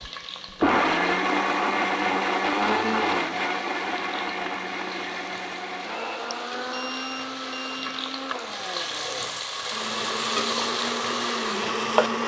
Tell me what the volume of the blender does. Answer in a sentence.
The loudness of the blender goes down, then up.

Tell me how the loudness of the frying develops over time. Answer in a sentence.
The loudness of the frying goes up.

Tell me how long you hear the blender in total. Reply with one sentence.
The blender can be heard for 12 seconds in total.